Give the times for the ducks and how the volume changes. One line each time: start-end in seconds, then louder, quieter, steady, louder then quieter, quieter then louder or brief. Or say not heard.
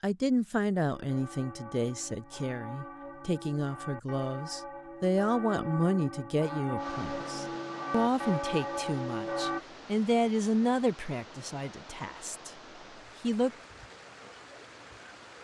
not heard.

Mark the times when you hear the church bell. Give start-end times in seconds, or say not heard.
0.9-9.6.